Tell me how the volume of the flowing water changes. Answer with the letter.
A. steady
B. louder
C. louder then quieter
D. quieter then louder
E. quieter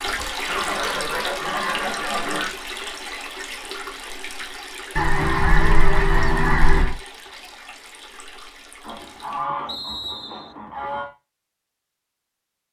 E.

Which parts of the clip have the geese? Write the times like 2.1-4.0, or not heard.
0.5-2.5, 5.0-7.0, 8.8-11.1.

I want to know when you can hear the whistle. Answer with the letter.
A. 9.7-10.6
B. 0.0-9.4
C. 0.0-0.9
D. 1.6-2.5
A.